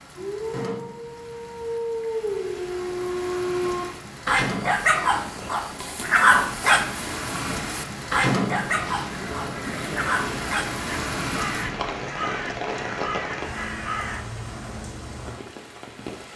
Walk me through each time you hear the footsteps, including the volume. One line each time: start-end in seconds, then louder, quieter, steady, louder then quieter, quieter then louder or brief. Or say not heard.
not heard.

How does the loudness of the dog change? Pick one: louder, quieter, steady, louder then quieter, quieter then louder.
louder then quieter.